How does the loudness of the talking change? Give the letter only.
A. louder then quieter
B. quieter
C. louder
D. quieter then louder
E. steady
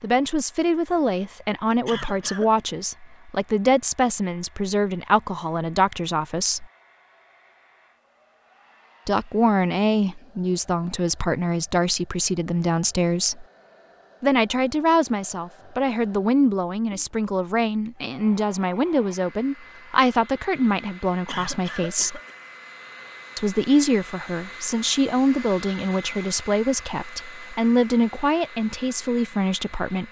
E.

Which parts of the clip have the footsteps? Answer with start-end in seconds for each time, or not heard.
not heard.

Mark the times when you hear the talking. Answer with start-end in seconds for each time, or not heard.
0.0-6.7, 9.1-13.4, 14.2-22.2, 23.4-30.0.